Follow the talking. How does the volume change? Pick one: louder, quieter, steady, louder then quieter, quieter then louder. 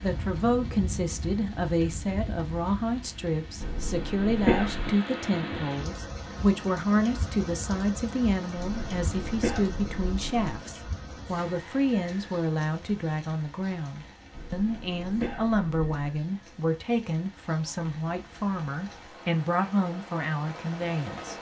steady.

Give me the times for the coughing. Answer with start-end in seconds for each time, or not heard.
3.6-5.0, 8.6-10.6, 14.3-16.1.